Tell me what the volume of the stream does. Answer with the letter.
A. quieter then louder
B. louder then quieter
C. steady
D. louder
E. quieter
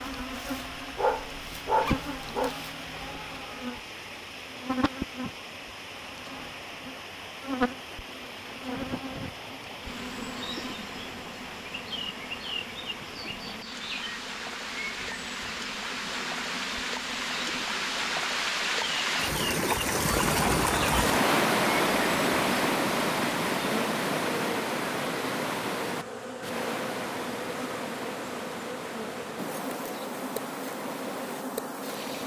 B.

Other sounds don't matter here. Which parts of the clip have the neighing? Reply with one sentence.
You can't hear the neighing here.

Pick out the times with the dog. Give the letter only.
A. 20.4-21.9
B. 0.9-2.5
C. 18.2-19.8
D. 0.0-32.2
B.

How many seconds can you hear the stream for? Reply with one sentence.
The stream can be heard for 32 seconds in total.